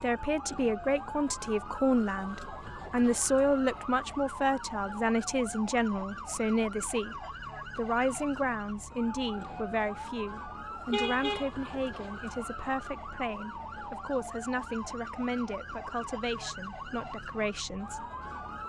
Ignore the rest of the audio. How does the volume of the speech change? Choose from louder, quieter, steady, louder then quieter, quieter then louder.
quieter.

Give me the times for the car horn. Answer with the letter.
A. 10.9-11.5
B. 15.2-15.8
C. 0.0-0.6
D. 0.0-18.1
A.